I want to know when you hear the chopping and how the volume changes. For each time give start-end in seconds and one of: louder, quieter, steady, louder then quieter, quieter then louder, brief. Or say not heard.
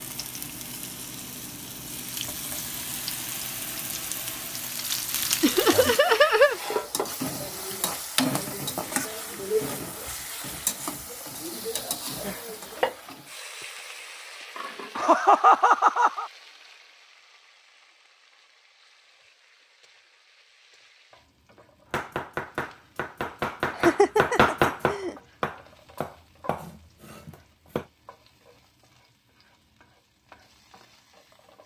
21.9-27.9 louder then quieter.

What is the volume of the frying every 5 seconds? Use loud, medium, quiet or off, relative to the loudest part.
medium, loud, medium, quiet, quiet, quiet, quiet.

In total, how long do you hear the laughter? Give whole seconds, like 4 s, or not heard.
4 s.